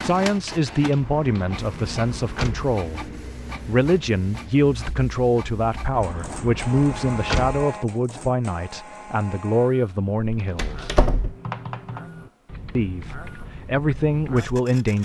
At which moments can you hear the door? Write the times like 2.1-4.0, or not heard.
1.0-2.8, 5.9-7.7, 10.3-11.3.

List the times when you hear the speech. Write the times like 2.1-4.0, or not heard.
0.0-3.0, 3.6-10.9, 12.8-15.0.